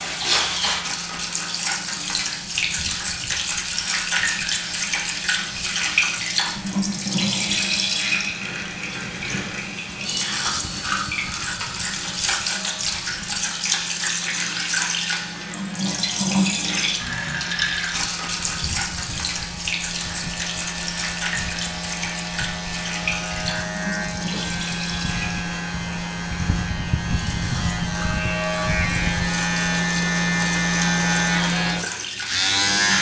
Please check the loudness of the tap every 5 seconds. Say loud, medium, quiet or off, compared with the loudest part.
loud, loud, loud, loud, medium, medium, medium.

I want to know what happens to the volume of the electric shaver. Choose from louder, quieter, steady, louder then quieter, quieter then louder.
louder.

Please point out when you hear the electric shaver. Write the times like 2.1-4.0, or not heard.
0.0-32.9.